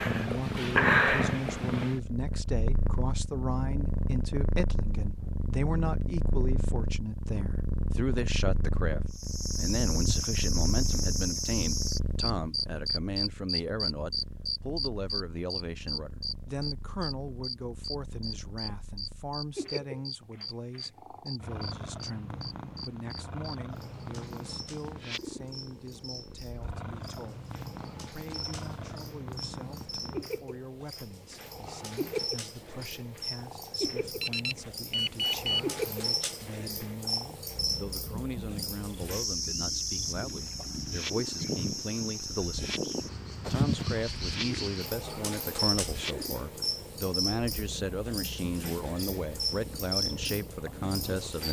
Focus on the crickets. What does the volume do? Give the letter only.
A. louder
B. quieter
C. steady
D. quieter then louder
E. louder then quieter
D.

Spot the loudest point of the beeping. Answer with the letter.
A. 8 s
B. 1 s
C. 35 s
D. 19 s
C.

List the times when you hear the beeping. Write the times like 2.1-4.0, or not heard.
34.0-35.6.